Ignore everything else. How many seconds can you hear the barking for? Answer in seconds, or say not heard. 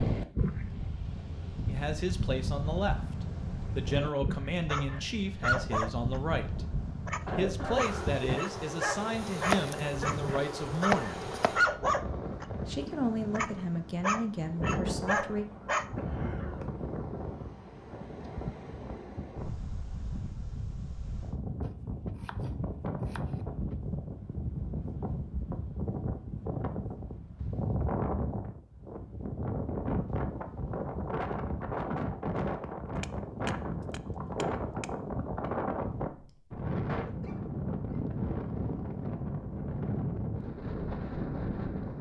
11 s.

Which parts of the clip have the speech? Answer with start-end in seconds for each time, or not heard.
1.6-11.3, 12.7-15.4.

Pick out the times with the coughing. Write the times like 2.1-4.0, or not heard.
7.2-8.4, 15.9-16.6, 36.9-37.5.